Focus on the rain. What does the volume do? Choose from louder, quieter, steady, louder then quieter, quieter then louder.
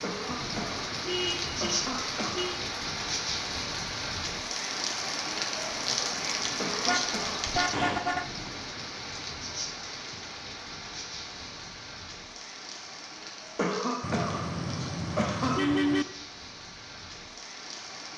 quieter.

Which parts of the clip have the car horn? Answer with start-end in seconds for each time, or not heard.
1.1-2.6, 6.8-8.2, 14.0-16.1.